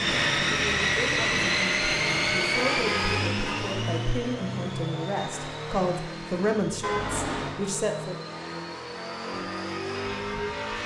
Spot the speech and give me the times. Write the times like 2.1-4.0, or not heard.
0.0-8.2.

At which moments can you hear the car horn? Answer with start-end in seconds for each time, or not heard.
2.5-3.7, 6.8-7.6.